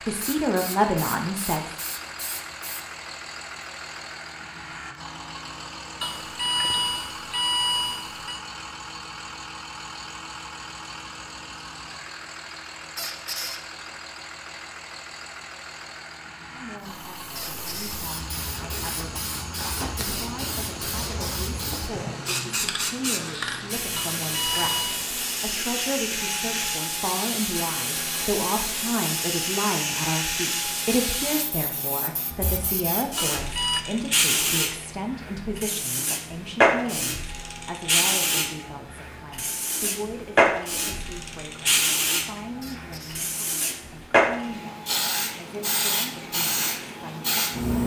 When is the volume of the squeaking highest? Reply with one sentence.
The loudest moment of the squeaking is at 13 seconds.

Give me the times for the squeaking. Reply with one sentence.
You can hear the squeaking from 12.9 to 13.6 s, from 17.4 to 18.0 s and from 42.6 to 43.2 s.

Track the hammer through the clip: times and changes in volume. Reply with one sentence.
You can't hear the hammer here.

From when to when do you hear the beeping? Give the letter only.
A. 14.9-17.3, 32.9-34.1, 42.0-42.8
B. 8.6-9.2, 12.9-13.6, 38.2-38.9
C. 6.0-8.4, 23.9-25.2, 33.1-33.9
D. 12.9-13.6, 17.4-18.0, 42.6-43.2
C.